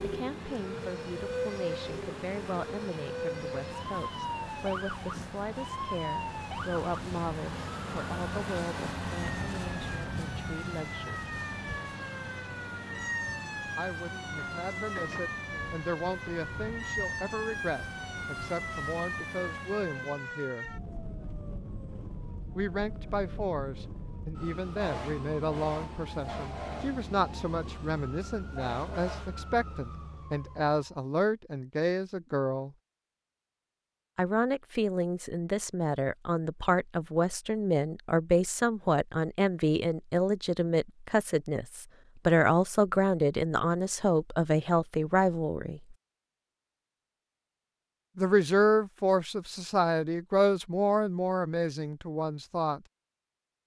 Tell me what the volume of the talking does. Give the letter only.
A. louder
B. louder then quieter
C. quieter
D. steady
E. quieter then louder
A.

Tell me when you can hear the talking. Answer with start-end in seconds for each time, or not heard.
0.0-11.3, 13.8-20.7, 22.6-32.7, 34.1-46.0, 48.1-52.8.